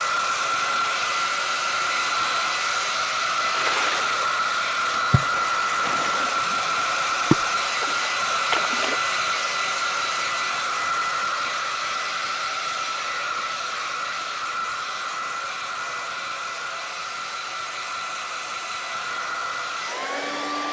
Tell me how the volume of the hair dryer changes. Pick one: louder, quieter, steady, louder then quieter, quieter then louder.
quieter.